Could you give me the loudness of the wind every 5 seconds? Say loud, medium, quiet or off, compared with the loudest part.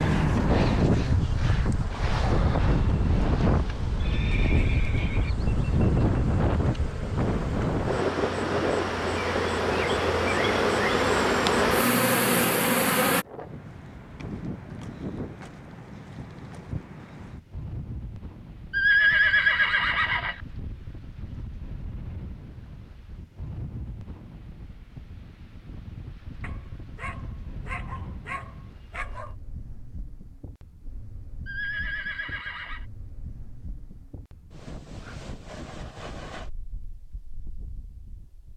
loud, loud, medium, quiet, quiet, quiet, quiet, quiet.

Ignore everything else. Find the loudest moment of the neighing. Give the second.
19 s.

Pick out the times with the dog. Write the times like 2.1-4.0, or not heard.
26.4-29.4.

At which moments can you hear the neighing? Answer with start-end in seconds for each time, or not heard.
4.0-5.3, 18.7-20.4, 31.4-32.9.